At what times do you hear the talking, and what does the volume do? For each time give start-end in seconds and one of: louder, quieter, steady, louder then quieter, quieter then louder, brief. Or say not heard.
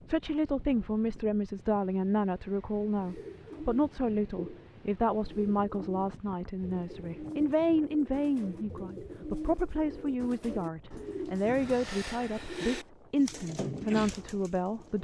0.1-14.9 steady.